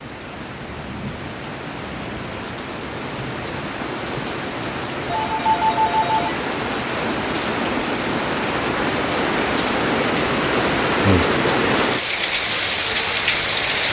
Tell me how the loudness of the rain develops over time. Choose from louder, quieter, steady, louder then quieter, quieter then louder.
louder.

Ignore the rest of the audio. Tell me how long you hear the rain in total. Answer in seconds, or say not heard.
14 s.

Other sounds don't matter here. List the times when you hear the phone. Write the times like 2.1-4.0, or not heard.
5.0-6.2.